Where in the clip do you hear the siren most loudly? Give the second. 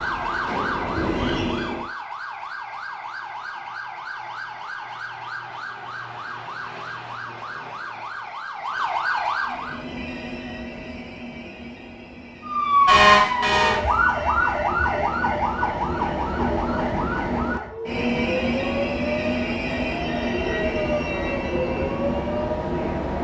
13 s.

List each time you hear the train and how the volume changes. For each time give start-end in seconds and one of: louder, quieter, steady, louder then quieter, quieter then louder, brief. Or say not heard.
0.0-1.9 brief
9.4-23.2 louder.